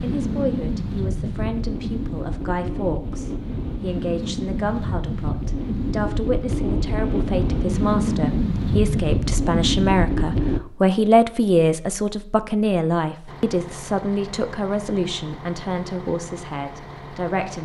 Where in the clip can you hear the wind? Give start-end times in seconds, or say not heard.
0.0-10.6.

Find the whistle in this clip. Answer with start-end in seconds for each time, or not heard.
not heard.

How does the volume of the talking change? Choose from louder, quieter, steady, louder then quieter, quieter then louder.
louder then quieter.